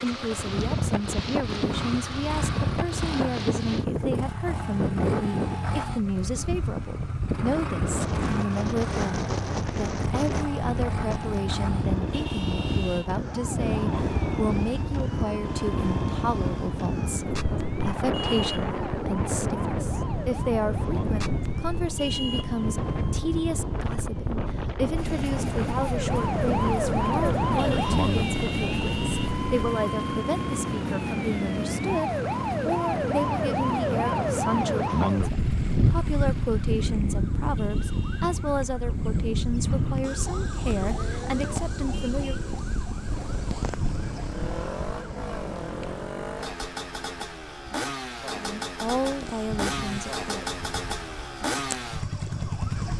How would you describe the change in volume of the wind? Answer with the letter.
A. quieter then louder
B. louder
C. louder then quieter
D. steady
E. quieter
D.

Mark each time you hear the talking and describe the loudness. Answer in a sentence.
The talking can be heard from 0.0 to 42.4 s, at a steady volume; and briefly from 48.4 to 50.5 s.